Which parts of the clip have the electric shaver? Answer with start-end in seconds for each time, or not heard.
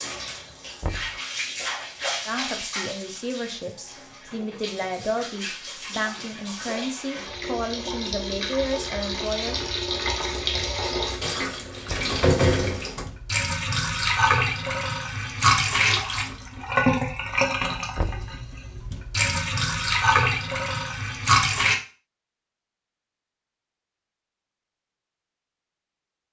not heard.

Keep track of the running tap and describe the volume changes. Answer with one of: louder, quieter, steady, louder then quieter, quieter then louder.
louder.